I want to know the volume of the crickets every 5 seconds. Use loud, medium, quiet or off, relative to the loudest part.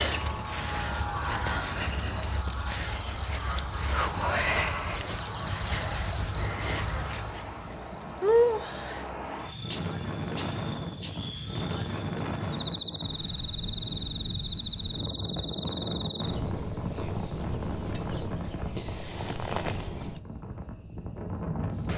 loud, loud, medium, medium, medium.